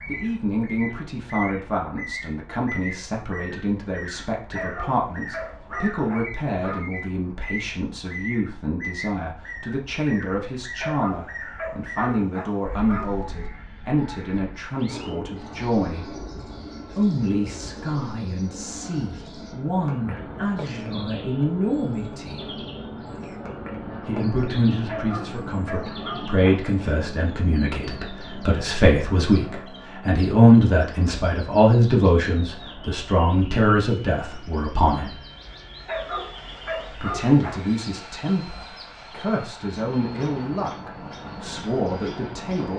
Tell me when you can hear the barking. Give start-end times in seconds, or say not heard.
4.5-6.8, 10.8-13.3, 24.9-26.8, 35.9-37.8.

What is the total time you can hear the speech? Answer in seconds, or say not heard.
39 s.